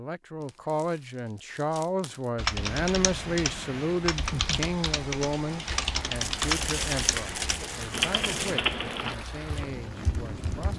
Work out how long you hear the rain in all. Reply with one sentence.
You can hear the rain for 8 seconds altogether.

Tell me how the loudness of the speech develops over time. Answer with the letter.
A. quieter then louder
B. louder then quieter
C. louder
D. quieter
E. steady
D.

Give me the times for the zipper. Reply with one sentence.
The zipper can't be heard in this clip.